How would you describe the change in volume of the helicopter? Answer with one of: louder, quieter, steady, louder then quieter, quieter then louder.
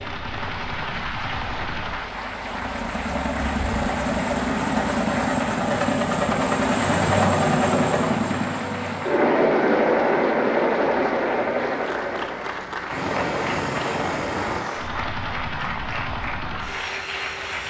louder then quieter.